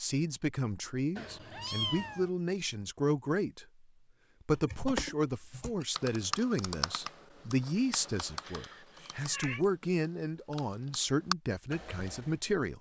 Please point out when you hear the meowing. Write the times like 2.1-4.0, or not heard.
1.1-2.3, 8.4-9.7.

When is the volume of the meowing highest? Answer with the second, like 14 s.
2 s.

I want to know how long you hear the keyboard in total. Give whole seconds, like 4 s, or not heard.
8 s.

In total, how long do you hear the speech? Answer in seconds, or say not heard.
12 s.